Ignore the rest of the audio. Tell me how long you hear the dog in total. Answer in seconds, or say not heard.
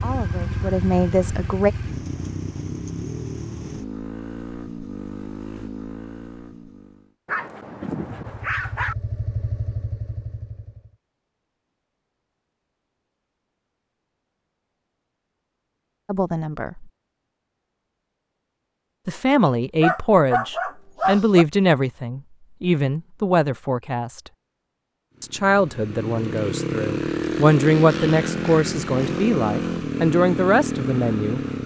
4 s.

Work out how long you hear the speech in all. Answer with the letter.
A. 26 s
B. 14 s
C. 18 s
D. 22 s
B.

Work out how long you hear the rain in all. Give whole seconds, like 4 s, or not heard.
not heard.